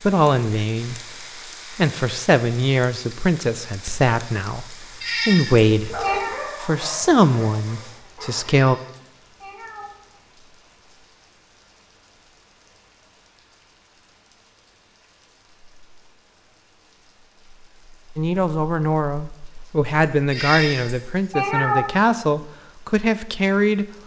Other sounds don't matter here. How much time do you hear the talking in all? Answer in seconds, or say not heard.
14 s.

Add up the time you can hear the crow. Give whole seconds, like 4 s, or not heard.
not heard.